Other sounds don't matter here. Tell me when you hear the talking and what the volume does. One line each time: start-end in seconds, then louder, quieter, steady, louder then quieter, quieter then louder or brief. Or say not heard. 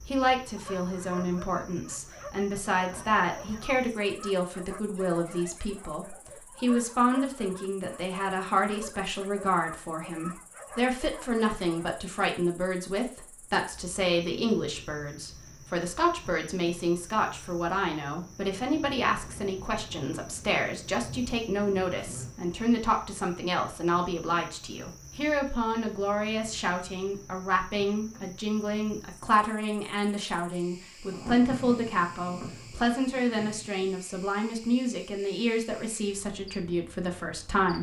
0.1-37.7 steady.